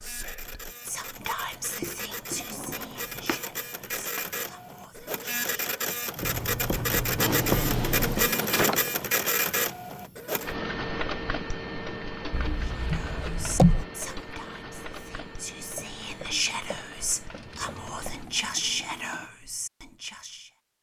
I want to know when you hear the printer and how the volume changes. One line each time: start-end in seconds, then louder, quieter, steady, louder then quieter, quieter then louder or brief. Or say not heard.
0.0-19.3 louder then quieter.